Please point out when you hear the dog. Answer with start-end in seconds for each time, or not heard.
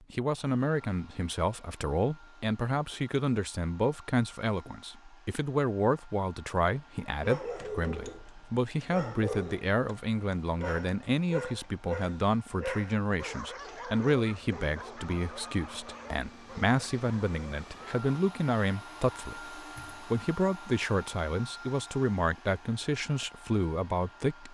7.2-18.1.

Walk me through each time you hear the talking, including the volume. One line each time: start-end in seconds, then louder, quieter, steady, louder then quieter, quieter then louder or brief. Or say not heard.
0.1-24.5 steady.